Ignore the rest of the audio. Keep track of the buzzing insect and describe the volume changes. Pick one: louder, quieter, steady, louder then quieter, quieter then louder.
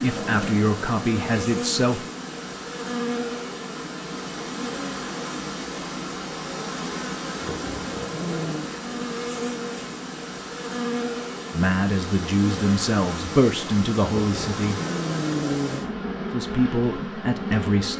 steady.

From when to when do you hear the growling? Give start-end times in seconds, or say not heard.
0.1-1.0, 7.4-8.7, 14.1-15.8.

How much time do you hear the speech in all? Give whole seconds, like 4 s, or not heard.
7 s.